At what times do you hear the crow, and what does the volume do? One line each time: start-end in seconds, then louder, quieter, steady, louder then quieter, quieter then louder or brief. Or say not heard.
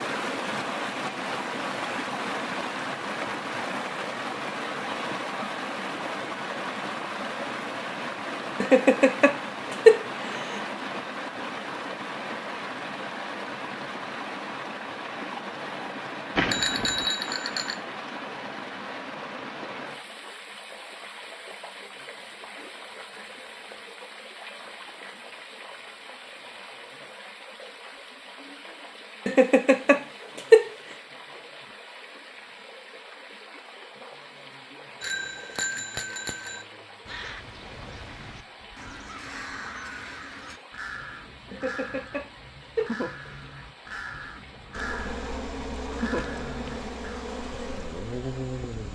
37.0-47.2 louder.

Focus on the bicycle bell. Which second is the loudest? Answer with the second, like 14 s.
17 s.